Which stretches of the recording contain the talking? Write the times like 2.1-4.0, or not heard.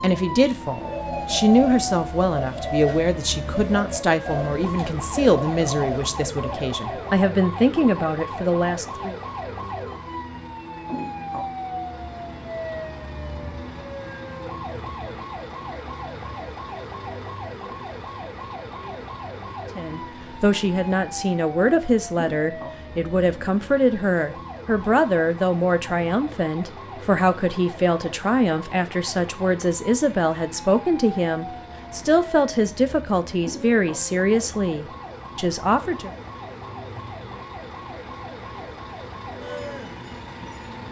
0.0-9.2, 19.8-36.1.